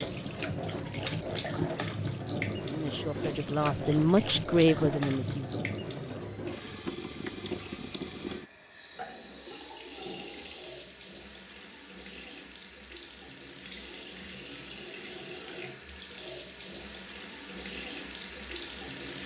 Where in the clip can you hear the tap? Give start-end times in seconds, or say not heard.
0.0-19.2.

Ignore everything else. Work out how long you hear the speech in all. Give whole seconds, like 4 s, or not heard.
3 s.